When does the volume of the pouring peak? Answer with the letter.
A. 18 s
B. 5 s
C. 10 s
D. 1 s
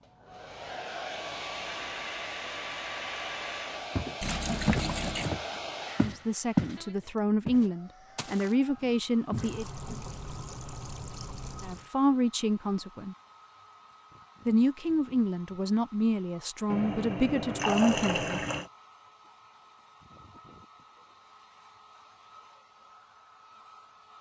A.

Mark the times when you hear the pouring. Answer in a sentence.
The pouring can be heard from 4.2 to 5.3 s, from 9.3 to 11.9 s and from 16.7 to 18.7 s.